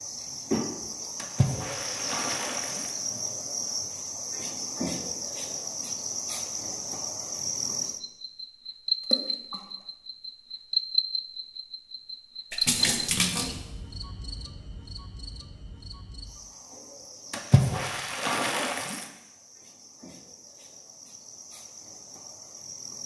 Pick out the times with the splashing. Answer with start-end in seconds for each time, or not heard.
1.1-2.9, 9.0-9.7, 12.5-13.6, 17.3-19.1.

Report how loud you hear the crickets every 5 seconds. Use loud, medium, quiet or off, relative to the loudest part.
loud, loud, loud, quiet, quiet.